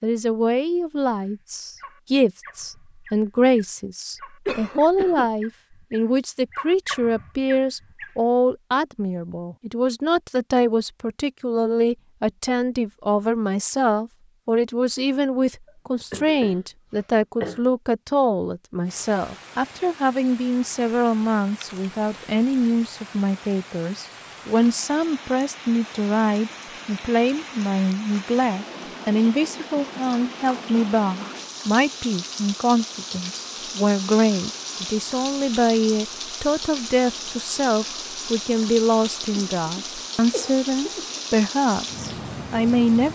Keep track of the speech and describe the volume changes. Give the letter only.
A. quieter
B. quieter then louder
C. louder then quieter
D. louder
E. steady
E.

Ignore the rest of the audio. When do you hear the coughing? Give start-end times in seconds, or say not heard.
4.5-5.2, 15.7-17.6, 39.4-41.2.